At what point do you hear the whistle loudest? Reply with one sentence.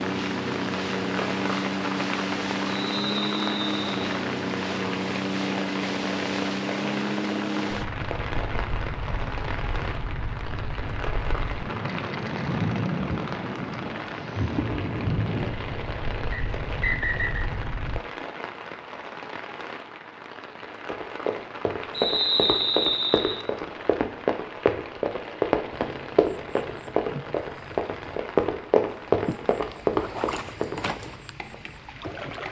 The volume of the whistle peaks at 22 seconds.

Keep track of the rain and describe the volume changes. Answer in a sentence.
The volume of the rain goes down.